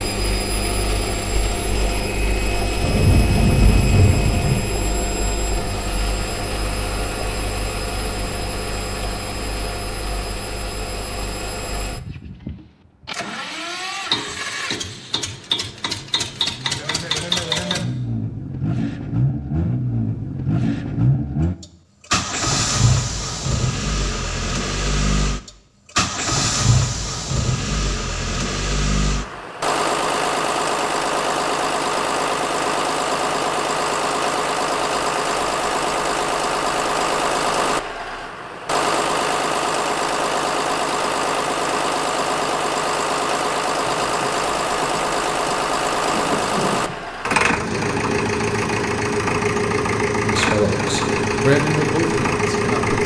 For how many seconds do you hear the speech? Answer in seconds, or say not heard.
3 s.